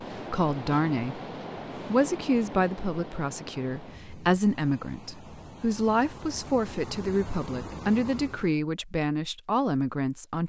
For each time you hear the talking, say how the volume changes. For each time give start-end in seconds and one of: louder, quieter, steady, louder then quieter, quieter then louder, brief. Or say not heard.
0.1-1.2 brief
1.9-10.4 steady.